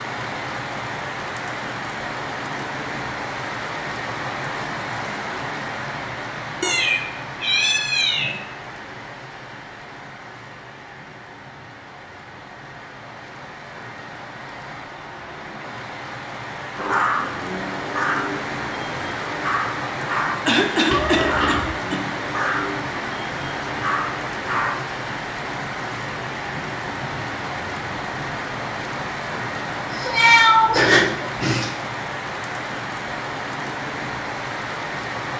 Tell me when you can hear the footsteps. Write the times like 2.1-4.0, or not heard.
not heard.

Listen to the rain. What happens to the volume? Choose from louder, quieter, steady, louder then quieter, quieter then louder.
quieter then louder.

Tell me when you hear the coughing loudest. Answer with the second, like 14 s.
21 s.